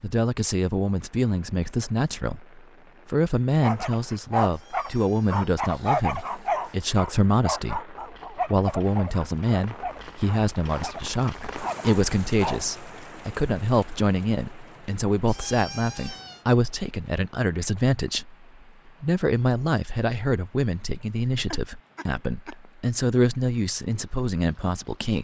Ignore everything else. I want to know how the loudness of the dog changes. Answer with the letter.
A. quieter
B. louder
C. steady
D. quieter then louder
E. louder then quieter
A.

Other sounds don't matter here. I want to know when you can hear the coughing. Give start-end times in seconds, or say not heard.
21.4-22.6.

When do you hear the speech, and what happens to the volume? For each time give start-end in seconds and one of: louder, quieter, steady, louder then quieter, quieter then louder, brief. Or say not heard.
0.0-25.1 steady.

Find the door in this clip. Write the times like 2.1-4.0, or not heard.
not heard.